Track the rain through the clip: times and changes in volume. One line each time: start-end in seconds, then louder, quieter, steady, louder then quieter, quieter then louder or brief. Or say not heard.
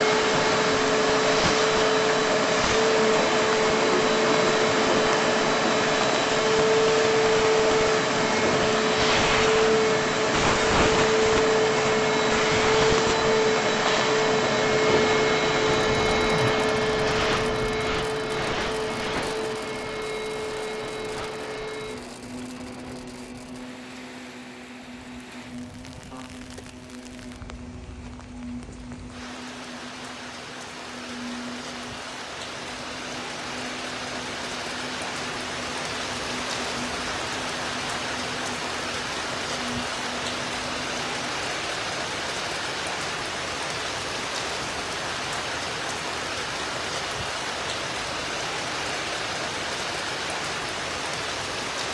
0.0-51.8 quieter then louder.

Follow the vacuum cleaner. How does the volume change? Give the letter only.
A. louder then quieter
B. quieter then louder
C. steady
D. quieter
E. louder
D.